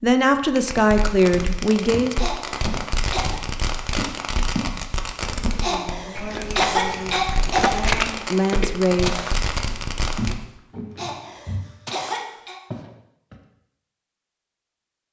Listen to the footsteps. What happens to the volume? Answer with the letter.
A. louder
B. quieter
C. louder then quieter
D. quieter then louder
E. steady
C.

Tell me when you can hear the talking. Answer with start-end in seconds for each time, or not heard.
0.0-2.2, 5.5-9.2.